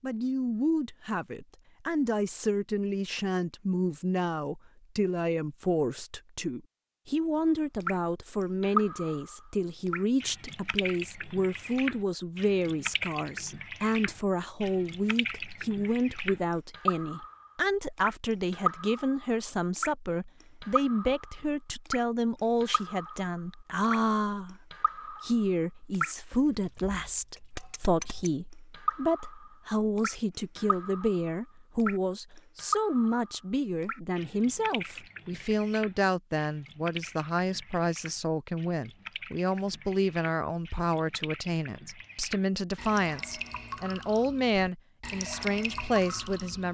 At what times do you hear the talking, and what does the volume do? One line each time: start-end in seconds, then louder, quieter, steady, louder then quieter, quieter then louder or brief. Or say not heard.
0.0-46.6 steady.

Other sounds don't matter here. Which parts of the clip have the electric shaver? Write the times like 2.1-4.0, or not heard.
not heard.